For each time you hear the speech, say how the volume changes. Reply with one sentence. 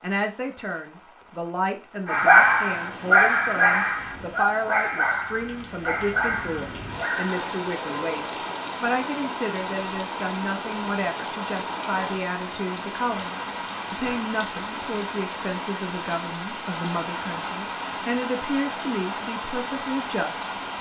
The speech can be heard from 0.0 to 20.4 s, at a steady volume.